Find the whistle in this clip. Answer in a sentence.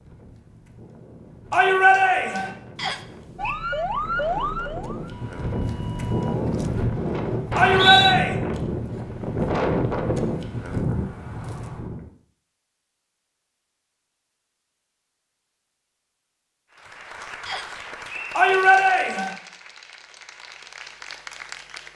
You can hear the whistle from 2.8 to 3.5 s, from 7.5 to 8.2 s and from 17.4 to 18.4 s.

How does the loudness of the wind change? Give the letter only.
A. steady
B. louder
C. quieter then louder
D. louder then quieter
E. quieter
B.